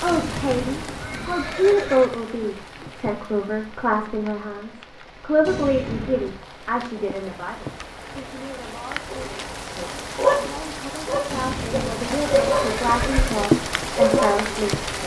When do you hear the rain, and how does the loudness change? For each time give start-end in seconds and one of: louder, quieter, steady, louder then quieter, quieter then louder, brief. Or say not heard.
0.0-15.0 quieter then louder.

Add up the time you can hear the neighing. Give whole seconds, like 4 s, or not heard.
5 s.